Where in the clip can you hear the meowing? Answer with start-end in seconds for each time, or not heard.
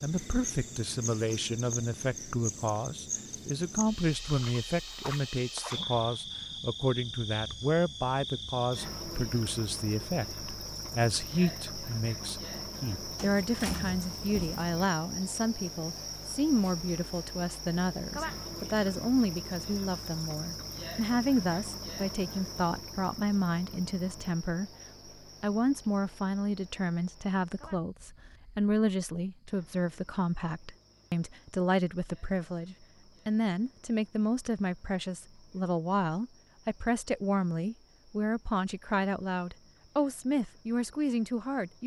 not heard.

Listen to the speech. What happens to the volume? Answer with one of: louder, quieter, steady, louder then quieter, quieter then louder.
steady.